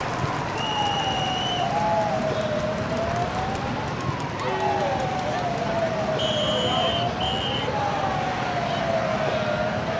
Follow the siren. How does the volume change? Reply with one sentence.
The loudness of the siren stays about the same.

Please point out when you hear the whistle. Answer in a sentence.
The whistle can be heard from 0.5 to 1.6 s and from 6.2 to 7.7 s.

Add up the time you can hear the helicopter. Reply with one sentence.
You can't hear the helicopter here.